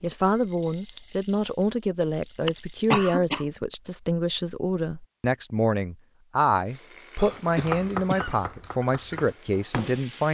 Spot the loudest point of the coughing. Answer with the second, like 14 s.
3 s.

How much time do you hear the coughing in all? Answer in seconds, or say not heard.
2 s.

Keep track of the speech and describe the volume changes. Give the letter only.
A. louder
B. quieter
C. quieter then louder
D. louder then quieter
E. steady
E.